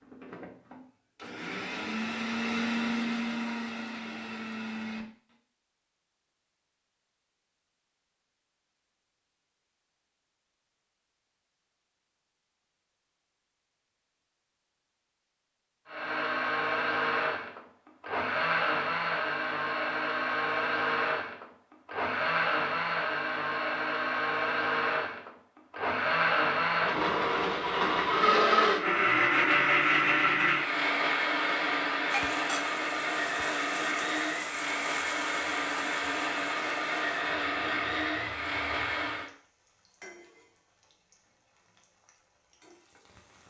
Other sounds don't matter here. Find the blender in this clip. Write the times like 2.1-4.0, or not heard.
0.0-5.3, 15.8-39.3.